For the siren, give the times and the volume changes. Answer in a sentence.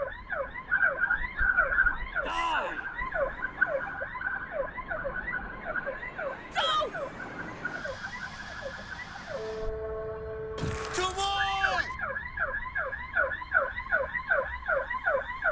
The siren can be heard from 0.0 to 15.4 s, getting quieter then louder.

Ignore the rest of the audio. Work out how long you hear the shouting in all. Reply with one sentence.
The shouting can be heard for 2 seconds in total.